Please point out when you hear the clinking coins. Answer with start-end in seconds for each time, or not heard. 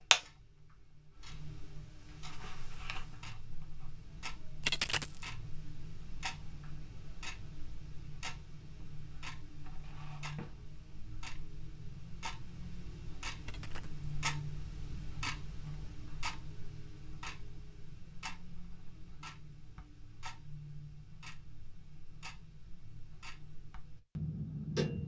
4.6-5.2, 13.4-14.0.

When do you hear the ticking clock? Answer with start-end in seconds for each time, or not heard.
0.0-25.0.